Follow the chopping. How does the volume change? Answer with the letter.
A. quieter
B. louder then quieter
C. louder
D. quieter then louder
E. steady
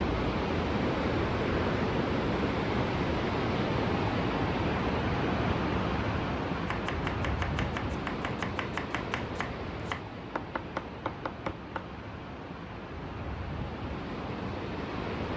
E.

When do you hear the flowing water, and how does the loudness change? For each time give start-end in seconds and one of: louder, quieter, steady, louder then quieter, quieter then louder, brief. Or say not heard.
0.0-15.3 quieter.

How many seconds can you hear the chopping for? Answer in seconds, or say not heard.
5 s.